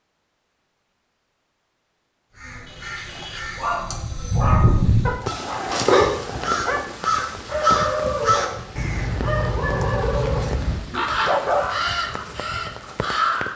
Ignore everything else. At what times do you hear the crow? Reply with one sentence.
The crow can be heard from 2.4 to 13.5 s.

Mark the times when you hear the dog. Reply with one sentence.
You can hear the dog from 3.0 to 12.4 s.